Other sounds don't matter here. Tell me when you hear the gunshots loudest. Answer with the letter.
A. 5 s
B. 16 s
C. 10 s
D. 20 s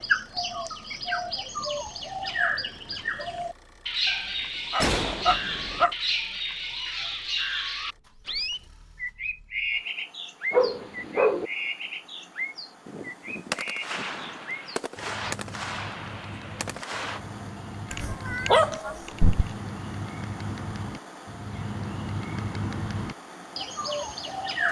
A.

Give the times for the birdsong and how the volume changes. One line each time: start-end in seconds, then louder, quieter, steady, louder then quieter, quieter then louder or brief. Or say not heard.
0.0-24.6 quieter then louder.